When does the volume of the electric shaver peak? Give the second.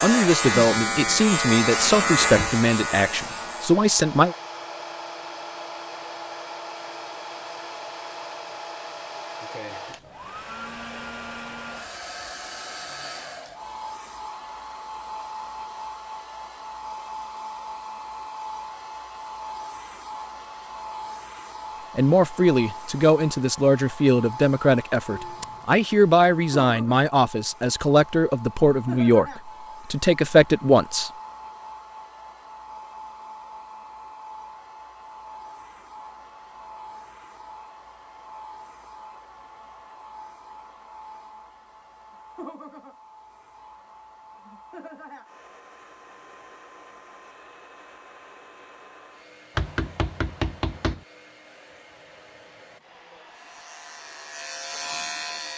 2 s.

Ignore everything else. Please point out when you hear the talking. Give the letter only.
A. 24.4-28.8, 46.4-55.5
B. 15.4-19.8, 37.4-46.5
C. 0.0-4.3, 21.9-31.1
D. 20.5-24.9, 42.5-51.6
C.